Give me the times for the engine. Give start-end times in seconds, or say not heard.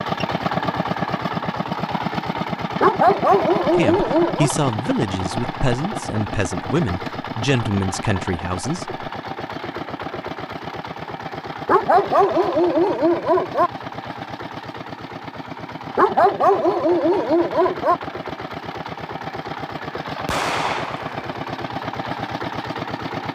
0.0-23.3.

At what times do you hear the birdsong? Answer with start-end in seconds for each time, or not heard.
not heard.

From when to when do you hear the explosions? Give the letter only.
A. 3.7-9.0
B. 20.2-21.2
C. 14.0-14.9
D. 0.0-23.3
B.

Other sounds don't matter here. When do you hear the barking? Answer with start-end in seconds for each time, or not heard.
2.8-4.5, 11.7-13.7, 15.9-17.9.